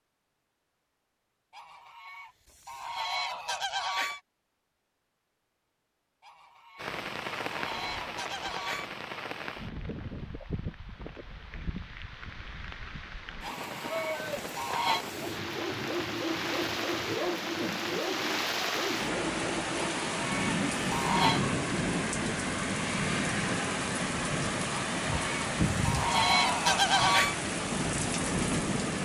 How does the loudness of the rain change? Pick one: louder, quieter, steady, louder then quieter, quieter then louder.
louder.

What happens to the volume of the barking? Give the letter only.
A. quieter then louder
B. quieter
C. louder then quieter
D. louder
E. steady
E.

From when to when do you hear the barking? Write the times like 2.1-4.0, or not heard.
14.9-20.1.